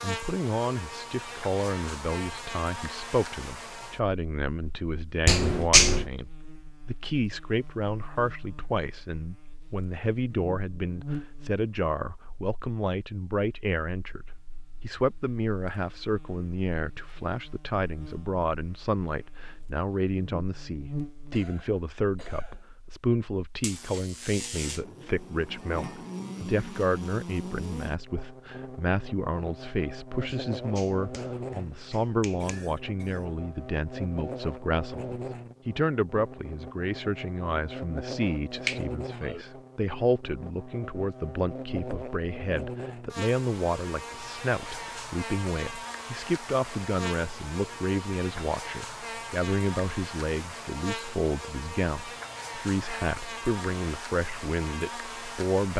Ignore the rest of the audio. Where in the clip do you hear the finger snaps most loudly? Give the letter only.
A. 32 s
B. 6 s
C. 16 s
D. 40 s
B.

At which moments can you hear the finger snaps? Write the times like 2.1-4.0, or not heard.
5.2-6.1, 30.2-32.6, 38.6-39.5.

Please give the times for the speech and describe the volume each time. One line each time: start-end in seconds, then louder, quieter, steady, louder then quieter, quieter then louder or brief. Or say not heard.
0.0-55.7 steady.